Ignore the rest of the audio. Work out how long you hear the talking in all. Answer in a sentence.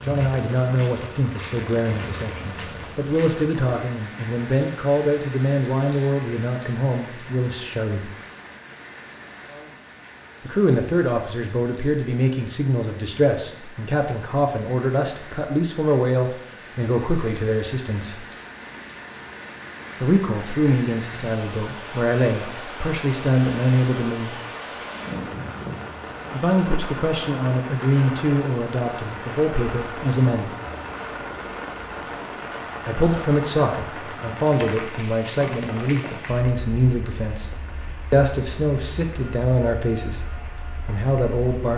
The talking can be heard for 33 seconds in total.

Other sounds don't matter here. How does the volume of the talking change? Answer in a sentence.
The volume of the talking stays about the same.